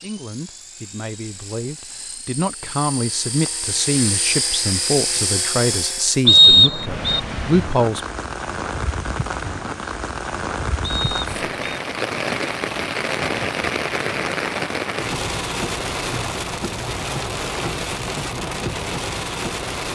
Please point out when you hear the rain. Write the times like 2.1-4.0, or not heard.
6.8-19.9.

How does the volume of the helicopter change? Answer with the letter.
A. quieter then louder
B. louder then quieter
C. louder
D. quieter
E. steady
C.